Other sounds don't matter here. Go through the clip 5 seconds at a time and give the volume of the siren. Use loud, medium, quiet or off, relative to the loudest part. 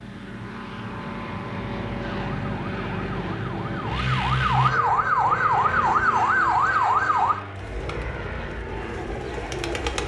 medium, loud.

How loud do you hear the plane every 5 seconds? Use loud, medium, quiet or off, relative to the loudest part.
loud, medium.